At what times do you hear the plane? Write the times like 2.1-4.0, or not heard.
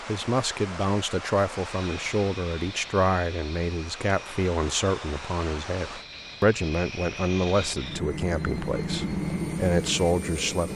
1.6-10.7.